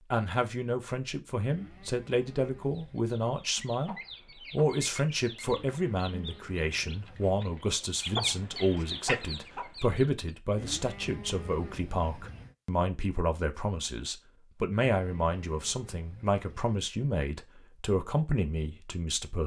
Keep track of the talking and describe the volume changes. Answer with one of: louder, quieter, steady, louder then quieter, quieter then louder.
steady.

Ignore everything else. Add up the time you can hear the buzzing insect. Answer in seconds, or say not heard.
not heard.